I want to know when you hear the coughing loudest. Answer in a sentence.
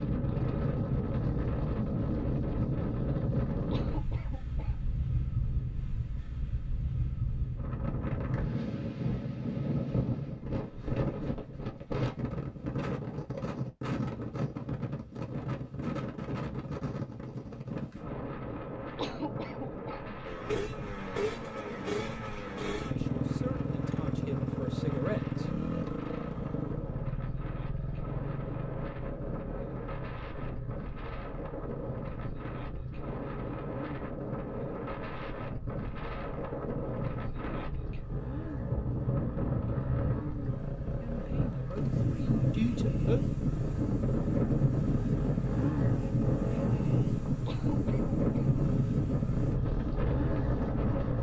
The loudest moment of the coughing is at 19 seconds.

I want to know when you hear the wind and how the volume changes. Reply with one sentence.
You can hear the wind from 0.0 to 51.1 s, getting quieter then louder.